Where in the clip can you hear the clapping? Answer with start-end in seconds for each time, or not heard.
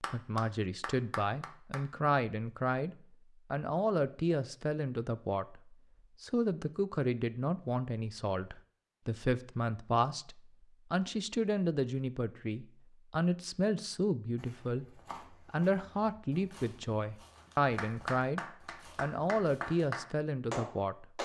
0.0-1.9, 17.8-21.2.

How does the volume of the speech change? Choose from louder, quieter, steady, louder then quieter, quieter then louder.
steady.